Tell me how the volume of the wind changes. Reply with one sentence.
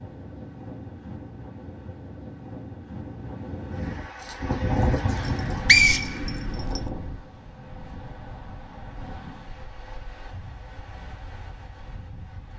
The volume of the wind goes up, then down.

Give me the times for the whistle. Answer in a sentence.
The whistle can be heard from 5.2 to 6.8 s.